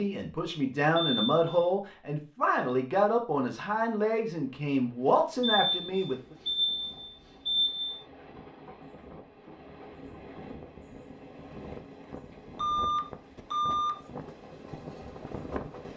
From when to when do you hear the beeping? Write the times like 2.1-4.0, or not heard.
0.9-1.7, 5.4-8.0, 12.6-14.0.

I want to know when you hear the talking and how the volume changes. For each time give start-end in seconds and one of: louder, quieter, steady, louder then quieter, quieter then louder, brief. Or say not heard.
0.0-6.3 steady.